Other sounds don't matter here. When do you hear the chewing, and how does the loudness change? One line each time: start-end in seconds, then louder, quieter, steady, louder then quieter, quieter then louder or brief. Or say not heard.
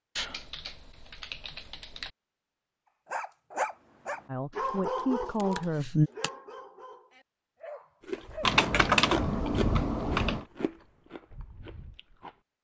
8.1-12.4 quieter.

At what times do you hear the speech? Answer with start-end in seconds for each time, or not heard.
4.2-6.1.